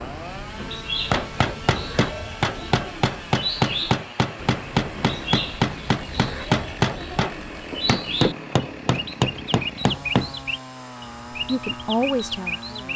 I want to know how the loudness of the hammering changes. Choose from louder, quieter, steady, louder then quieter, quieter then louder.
steady.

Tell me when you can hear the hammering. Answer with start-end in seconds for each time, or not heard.
1.0-10.3.